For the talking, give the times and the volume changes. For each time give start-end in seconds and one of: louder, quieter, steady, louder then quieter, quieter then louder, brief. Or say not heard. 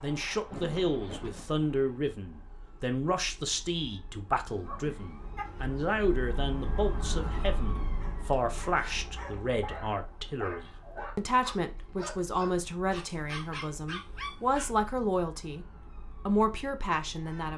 0.0-15.7 steady
16.2-17.5 brief.